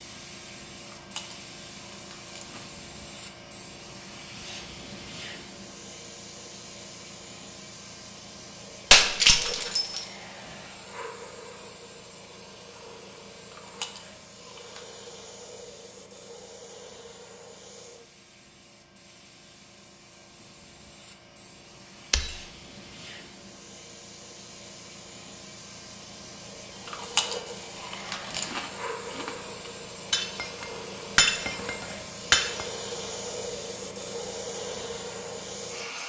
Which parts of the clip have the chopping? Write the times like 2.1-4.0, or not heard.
not heard.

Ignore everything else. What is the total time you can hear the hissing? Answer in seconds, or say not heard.
36 s.